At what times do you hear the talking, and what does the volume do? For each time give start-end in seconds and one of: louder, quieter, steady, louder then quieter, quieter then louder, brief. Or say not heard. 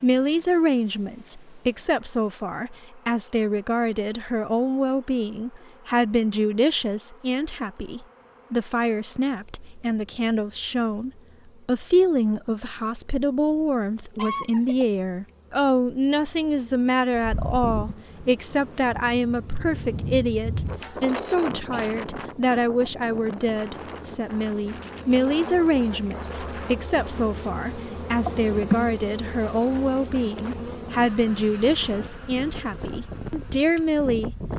0.0-34.4 steady.